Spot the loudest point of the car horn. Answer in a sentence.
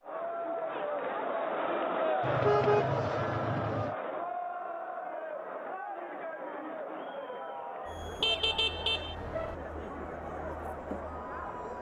The volume of the car horn peaks at 3 seconds.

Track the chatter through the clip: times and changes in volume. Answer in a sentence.
The chatter can be heard from 0.0 to 11.7 s, getting quieter.